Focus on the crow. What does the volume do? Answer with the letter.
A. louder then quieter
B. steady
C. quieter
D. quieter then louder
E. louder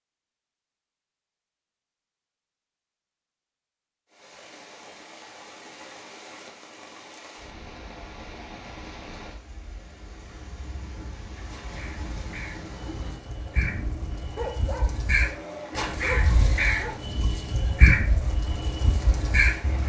E.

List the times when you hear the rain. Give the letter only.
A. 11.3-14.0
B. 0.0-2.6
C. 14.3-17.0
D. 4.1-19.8
D.